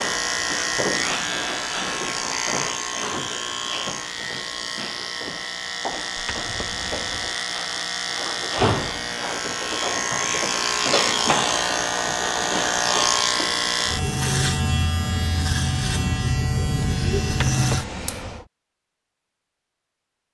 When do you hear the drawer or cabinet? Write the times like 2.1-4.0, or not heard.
6.2-7.3, 17.2-18.4.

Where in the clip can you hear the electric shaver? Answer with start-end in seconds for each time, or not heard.
0.0-18.2.